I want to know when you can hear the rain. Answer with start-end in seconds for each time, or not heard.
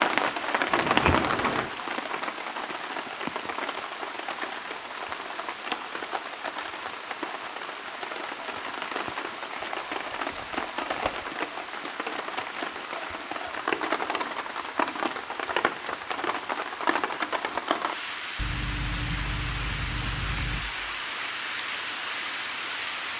0.0-23.1.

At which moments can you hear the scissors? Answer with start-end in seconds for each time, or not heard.
0.7-1.7, 9.5-11.2, 18.4-20.6.